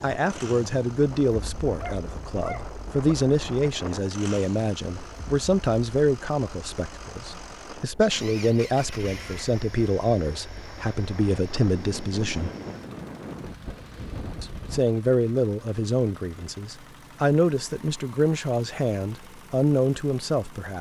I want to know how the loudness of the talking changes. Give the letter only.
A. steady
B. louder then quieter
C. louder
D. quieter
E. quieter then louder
A.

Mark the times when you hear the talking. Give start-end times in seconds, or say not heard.
0.0-12.5, 14.4-20.7.